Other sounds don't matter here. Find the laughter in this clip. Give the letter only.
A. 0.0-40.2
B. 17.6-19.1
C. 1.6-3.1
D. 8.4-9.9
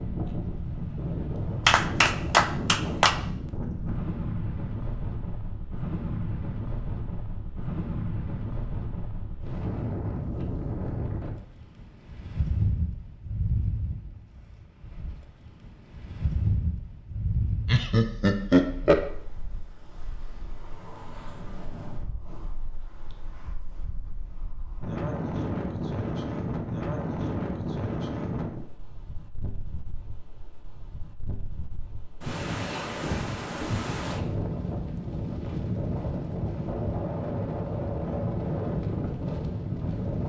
B.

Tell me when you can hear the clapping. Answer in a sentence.
The clapping can be heard from 1.6 to 3.1 s.